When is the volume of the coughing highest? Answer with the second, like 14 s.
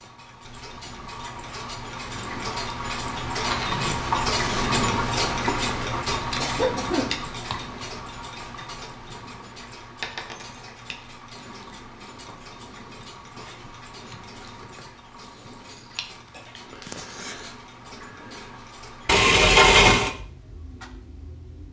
7 s.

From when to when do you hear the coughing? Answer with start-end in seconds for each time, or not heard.
5.8-7.2, 16.9-17.5.